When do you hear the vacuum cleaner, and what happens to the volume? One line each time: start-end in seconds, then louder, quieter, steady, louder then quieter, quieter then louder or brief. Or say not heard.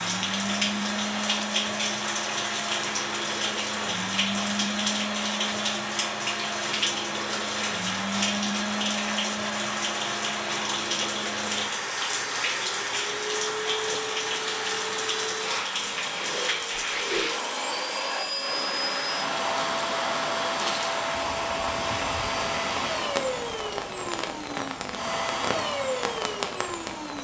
0.0-27.1 steady.